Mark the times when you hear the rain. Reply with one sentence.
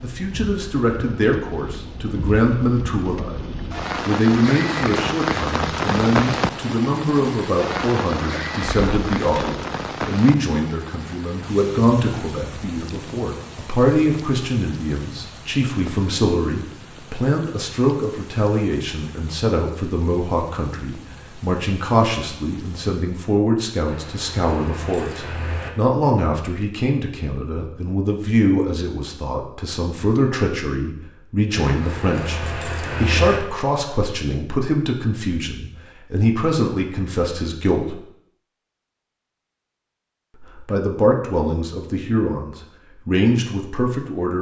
The rain can be heard from 0.0 to 23.3 s.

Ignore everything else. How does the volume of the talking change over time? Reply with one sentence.
The loudness of the talking stays about the same.